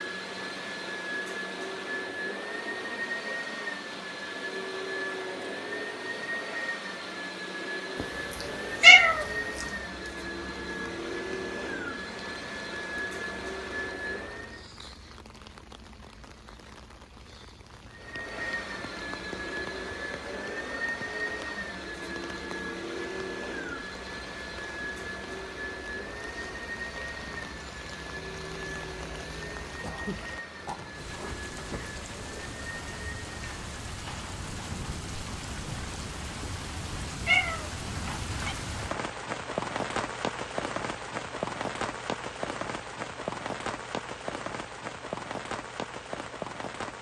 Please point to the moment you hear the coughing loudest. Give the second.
30 s.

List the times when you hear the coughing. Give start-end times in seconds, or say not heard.
29.8-31.9.